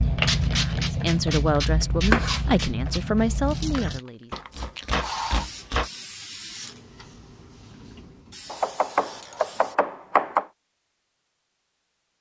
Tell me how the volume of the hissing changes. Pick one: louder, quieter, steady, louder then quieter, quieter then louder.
quieter.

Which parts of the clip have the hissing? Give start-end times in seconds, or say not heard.
0.0-9.8.